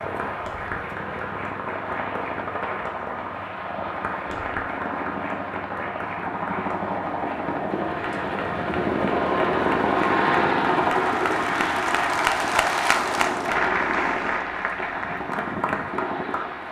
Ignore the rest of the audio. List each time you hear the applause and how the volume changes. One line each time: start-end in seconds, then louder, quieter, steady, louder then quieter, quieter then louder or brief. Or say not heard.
0.0-16.6 louder.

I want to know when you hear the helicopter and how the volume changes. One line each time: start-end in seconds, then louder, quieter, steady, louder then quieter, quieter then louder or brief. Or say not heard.
0.0-16.6 louder then quieter.